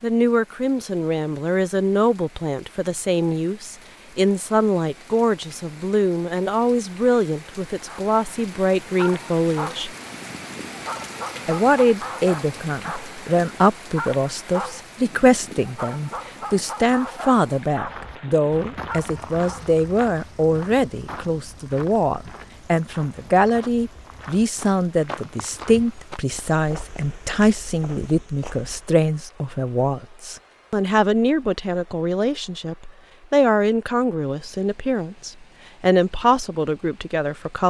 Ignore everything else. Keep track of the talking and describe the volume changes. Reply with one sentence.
The volume of the talking stays about the same.